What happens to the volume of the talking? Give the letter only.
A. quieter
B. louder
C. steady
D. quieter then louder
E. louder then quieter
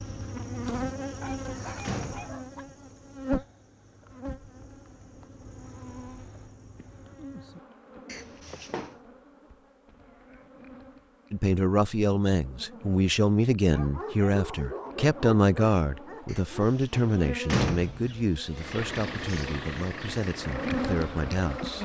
A.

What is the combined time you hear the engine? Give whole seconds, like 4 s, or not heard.
3 s.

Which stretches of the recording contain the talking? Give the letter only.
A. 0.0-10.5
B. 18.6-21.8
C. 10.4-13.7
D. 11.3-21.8
D.